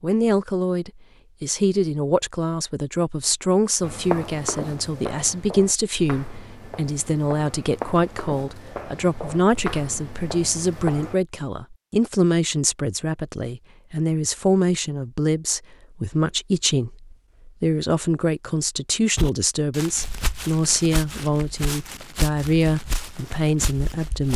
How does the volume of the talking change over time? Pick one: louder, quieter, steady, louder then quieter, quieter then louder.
steady.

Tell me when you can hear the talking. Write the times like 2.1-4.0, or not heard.
0.0-24.3.